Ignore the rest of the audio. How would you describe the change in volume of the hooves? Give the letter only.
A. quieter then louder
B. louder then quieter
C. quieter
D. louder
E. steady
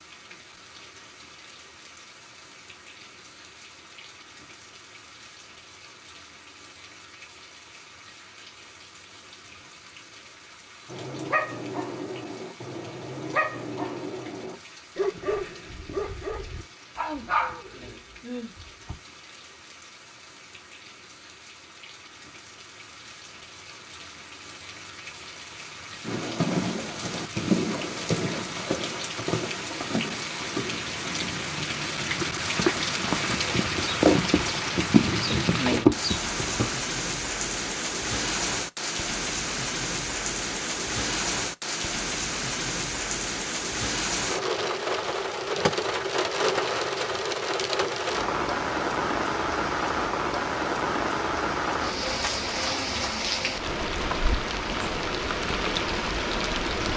A.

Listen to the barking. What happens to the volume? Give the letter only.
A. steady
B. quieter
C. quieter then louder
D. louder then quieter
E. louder
A.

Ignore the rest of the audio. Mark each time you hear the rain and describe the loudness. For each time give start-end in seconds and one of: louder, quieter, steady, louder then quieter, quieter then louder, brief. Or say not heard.
0.0-56.9 louder.